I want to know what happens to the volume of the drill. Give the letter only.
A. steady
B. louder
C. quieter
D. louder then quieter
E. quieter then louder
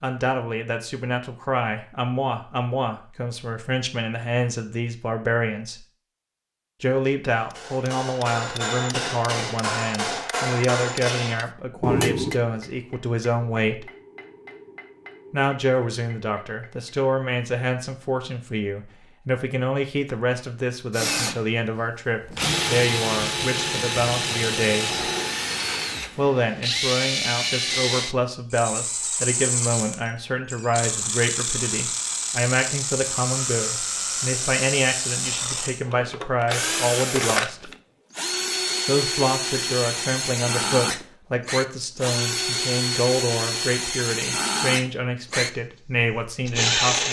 A.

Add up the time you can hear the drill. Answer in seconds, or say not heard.
26 s.